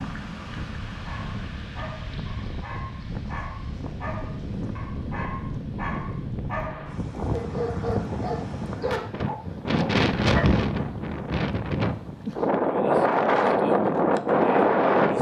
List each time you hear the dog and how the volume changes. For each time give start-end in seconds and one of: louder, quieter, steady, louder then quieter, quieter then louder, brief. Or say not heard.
0.9-10.5 louder.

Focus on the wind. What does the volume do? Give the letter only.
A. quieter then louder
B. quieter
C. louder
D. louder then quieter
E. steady
C.